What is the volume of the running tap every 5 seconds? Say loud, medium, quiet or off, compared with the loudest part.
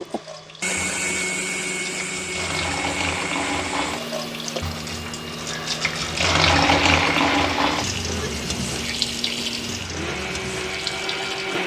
medium, loud, medium.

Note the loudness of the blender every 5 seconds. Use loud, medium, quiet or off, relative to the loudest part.
loud, medium, loud.